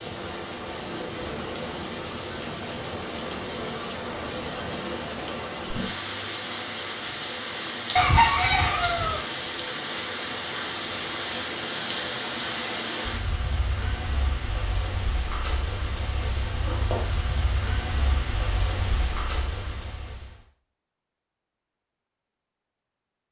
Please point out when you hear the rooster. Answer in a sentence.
You can hear the rooster from 8.0 to 9.2 s.